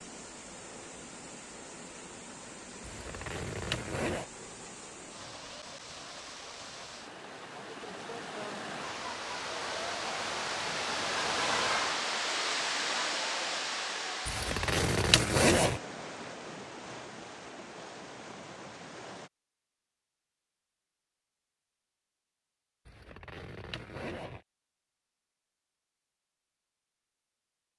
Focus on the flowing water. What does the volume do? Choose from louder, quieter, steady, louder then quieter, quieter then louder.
louder then quieter.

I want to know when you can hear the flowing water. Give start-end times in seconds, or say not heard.
0.0-19.3.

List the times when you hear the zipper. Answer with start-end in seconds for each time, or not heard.
2.8-4.2, 14.2-15.8, 22.9-24.4.